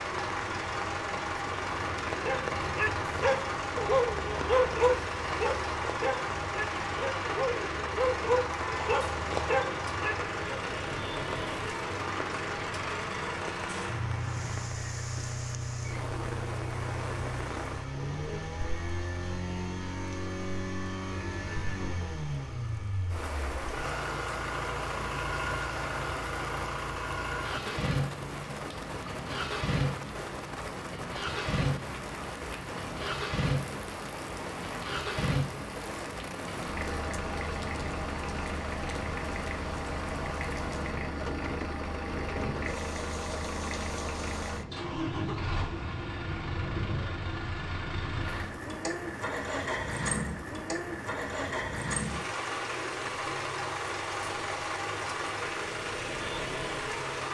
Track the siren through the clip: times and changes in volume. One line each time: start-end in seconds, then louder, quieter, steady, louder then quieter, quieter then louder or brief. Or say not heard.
not heard.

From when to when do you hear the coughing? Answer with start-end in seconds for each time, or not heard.
not heard.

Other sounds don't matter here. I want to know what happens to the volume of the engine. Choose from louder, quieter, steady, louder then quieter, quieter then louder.
steady.